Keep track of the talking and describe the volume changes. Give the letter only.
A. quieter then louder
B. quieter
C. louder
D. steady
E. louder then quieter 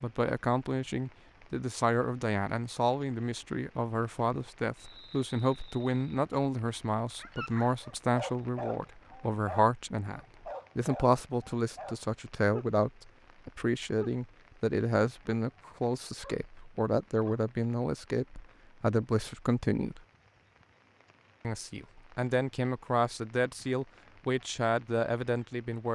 D.